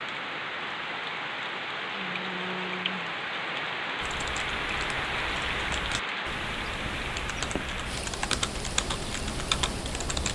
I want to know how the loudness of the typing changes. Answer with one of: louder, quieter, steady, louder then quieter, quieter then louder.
louder.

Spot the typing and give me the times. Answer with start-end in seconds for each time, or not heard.
4.0-10.3.